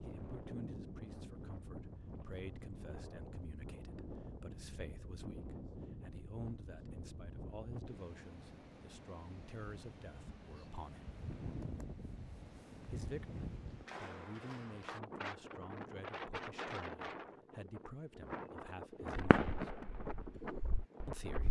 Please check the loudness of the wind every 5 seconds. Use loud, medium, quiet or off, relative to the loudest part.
loud, medium, loud, loud, loud.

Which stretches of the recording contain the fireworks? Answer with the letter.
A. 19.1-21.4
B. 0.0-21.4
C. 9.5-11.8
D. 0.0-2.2
A.